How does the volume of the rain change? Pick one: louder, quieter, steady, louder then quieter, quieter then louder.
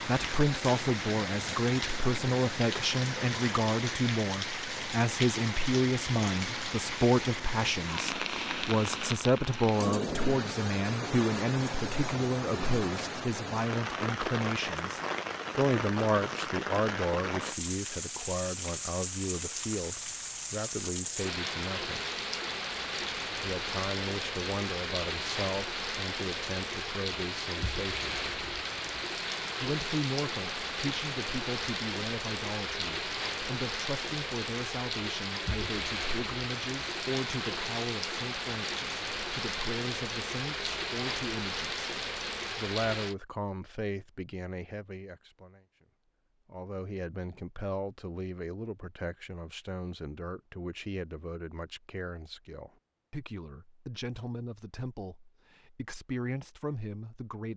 steady.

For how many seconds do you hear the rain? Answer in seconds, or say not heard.
43 s.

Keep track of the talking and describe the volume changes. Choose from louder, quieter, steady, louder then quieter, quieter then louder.
quieter.